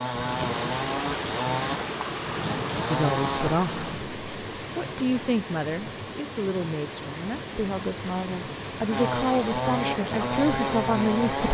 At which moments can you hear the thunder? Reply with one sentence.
You can hear the thunder from 0.1 to 4.1 s.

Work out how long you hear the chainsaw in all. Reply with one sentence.
You can hear the chainsaw for 6 seconds altogether.